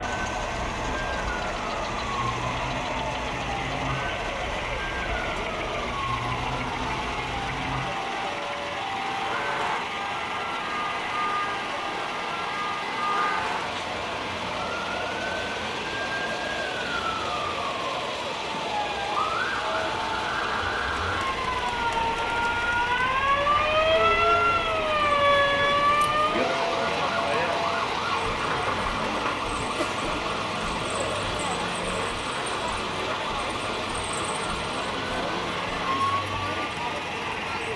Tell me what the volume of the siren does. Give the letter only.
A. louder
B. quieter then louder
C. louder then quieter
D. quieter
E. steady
C.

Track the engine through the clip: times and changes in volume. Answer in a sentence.
The engine can be heard from 0.0 to 37.7 s, at a steady volume.